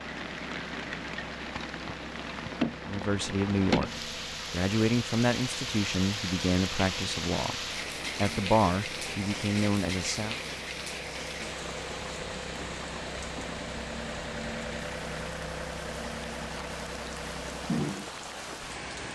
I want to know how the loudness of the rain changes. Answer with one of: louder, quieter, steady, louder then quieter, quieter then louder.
quieter.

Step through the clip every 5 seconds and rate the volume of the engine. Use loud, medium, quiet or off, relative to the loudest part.
medium, medium, loud, loud.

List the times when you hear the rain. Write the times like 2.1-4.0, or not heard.
0.0-19.1.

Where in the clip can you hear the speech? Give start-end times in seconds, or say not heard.
2.9-7.5, 8.2-10.3.